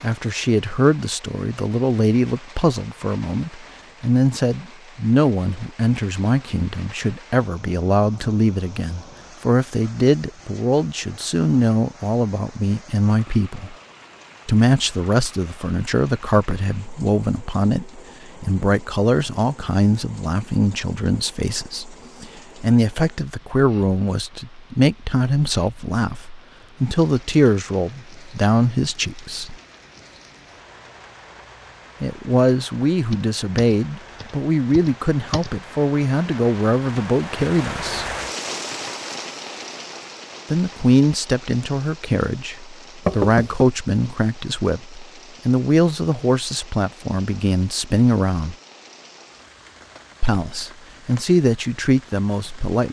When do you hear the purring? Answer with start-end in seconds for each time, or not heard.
not heard.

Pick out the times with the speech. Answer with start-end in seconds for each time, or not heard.
0.0-13.8, 14.4-29.6, 32.0-38.1, 40.5-48.5, 50.2-52.8.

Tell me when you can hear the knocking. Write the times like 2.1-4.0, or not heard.
43.0-43.6.